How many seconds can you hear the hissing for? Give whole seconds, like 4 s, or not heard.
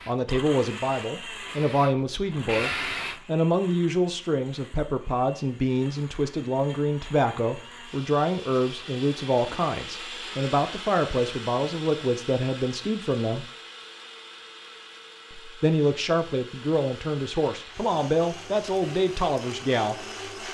3 s.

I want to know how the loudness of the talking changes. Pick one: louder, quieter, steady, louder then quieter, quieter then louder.
steady.